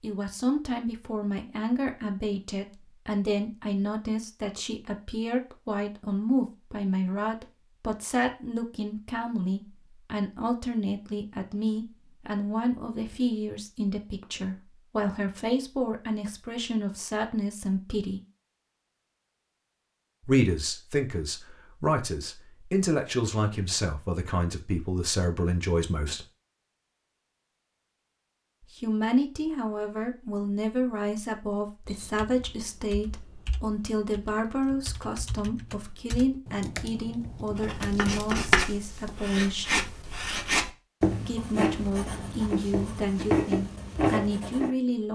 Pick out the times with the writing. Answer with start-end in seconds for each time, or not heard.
37.5-44.7.